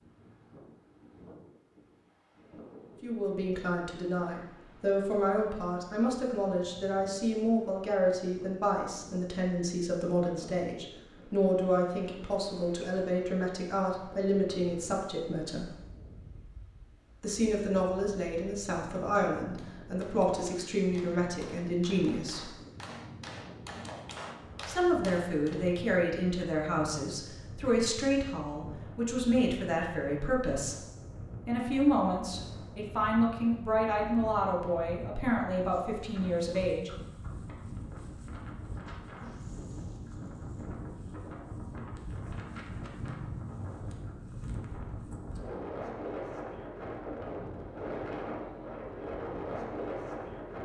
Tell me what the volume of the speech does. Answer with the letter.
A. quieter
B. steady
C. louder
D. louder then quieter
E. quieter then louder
B.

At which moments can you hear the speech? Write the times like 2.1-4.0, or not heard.
3.0-15.7, 17.2-22.6, 24.6-30.8, 31.4-36.9.